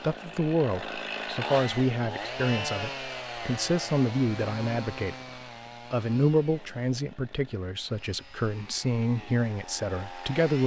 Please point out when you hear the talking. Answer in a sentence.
The talking can be heard from 0.0 to 5.2 s and from 5.9 to 10.6 s.